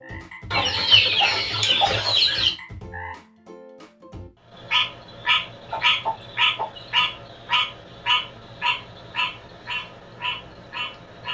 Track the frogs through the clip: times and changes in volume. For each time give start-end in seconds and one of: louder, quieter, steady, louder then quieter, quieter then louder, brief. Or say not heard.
0.0-11.2 louder then quieter.